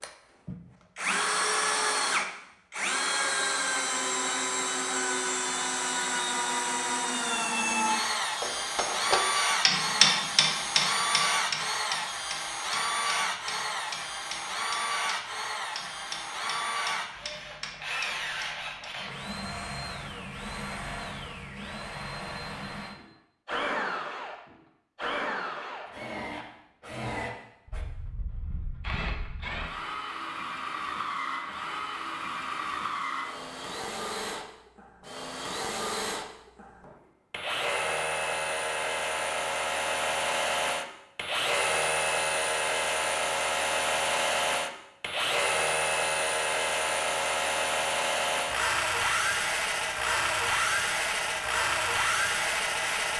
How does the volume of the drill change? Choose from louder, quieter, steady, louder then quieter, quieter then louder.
quieter then louder.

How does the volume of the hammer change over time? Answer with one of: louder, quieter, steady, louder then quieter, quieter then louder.
quieter.